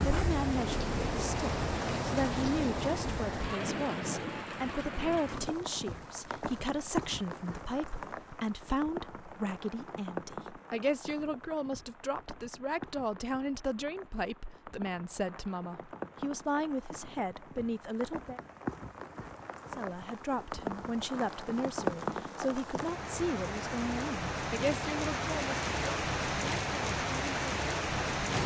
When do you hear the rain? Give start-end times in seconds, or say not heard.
0.0-28.4.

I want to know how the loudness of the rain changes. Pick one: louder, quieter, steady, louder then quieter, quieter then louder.
quieter then louder.